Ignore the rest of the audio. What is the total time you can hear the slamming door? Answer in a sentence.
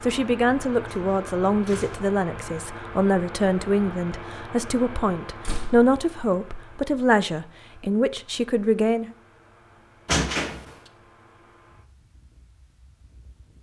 You can hear the slamming door for 2 seconds altogether.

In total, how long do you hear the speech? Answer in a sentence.
The speech can be heard for 9 seconds in total.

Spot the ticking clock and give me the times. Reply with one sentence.
You can't hear the ticking clock here.